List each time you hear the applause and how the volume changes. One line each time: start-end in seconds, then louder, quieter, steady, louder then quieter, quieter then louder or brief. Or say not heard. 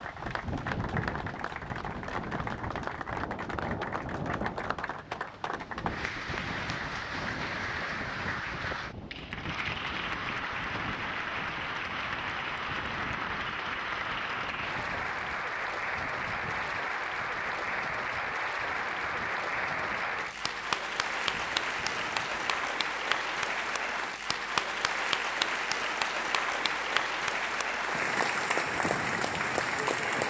0.0-30.2 louder.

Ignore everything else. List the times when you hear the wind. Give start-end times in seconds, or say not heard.
0.0-22.7.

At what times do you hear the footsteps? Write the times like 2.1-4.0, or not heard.
not heard.